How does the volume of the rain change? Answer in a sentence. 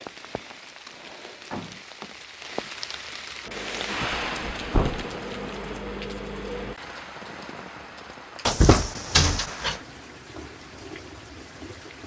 The volume of the rain goes up, then down.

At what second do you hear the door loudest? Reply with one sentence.
The volume of the door peaks at 9 seconds.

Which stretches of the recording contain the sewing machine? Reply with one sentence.
The sewing machine can be heard from 3.5 to 6.8 s.